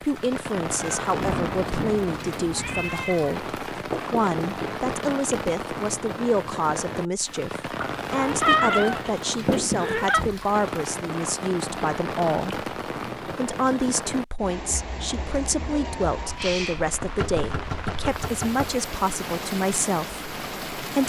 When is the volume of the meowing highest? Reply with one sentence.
The volume of the meowing peaks at 9 seconds.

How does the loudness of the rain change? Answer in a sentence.
The loudness of the rain stays about the same.